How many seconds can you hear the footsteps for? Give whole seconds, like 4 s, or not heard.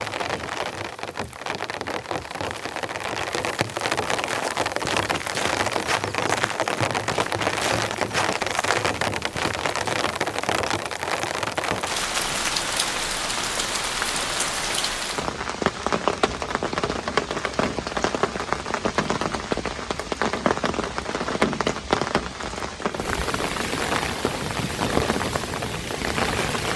6 s.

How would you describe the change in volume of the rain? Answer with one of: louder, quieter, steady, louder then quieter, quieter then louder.
steady.